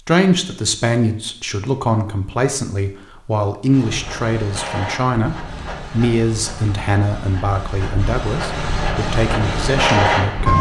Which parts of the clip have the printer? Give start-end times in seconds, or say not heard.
3.6-10.5.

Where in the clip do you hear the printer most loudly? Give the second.
10 s.